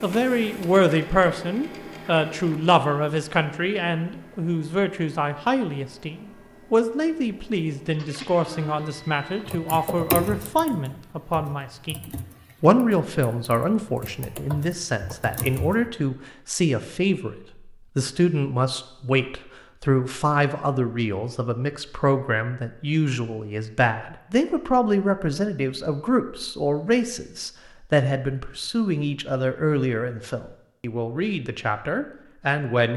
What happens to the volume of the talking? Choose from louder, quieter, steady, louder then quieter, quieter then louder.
steady.